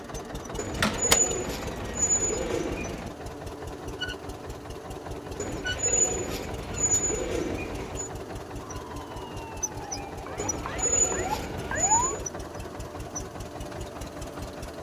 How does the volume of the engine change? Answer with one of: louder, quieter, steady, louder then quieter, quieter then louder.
steady.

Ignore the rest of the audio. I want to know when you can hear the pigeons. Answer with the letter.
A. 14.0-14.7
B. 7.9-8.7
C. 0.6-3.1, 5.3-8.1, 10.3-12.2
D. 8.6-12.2
C.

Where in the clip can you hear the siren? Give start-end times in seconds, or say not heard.
8.6-12.2.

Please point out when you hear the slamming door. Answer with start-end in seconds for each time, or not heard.
0.5-1.2.